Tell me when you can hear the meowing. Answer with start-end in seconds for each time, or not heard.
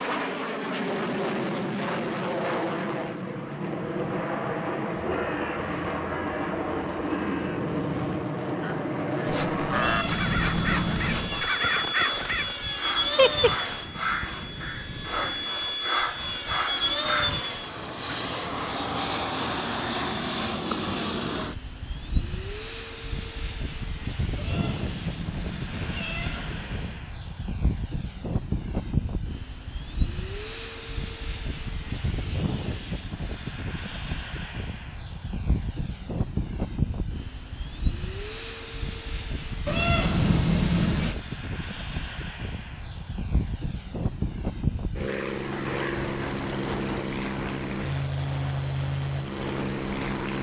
9.7-11.4, 24.4-27.1, 39.6-41.1.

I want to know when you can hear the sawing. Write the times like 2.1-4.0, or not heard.
9.2-18.1.